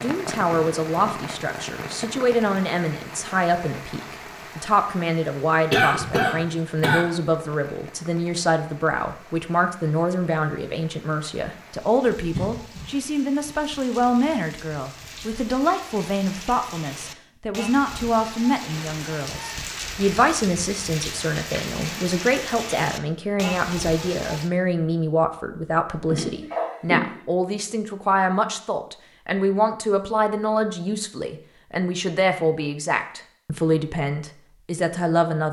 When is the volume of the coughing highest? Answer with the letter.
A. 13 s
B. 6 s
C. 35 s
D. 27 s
B.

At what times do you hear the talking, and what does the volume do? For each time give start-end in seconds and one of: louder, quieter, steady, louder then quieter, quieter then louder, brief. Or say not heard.
0.0-35.4 steady.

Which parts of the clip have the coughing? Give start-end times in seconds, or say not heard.
5.7-7.0, 12.3-12.9, 26.1-27.2.